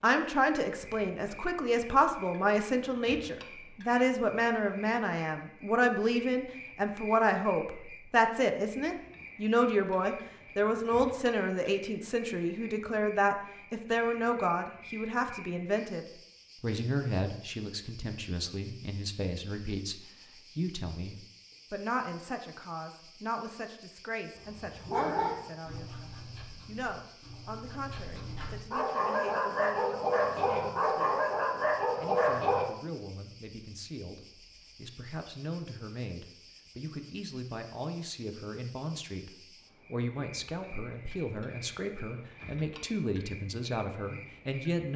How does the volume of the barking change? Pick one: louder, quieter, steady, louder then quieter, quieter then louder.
quieter then louder.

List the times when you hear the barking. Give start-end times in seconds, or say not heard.
24.4-32.6.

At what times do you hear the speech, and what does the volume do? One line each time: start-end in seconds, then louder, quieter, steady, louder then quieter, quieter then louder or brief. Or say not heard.
0.0-31.2 quieter
31.9-44.9 louder.